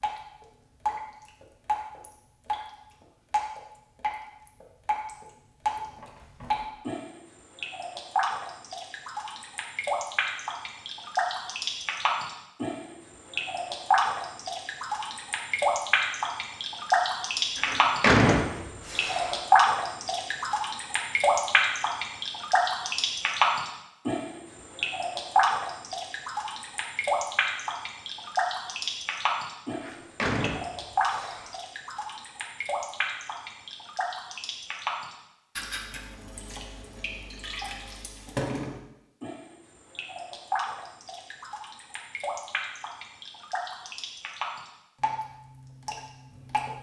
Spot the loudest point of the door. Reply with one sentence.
The loudest moment of the door is at 18 seconds.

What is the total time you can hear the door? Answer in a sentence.
The door can be heard for 4 seconds in total.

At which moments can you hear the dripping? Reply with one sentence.
The dripping can be heard from 0.0 to 46.7 s.